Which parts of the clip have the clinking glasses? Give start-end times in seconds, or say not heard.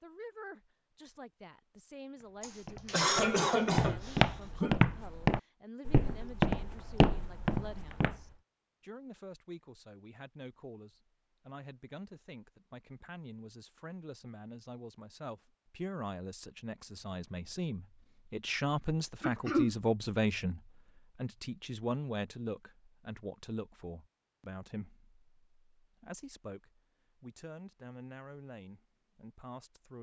not heard.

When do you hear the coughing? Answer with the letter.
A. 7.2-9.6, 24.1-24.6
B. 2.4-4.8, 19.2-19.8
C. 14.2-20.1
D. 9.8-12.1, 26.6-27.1
B.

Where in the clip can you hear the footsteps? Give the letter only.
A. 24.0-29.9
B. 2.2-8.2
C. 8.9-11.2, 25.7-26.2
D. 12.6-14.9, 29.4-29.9
B.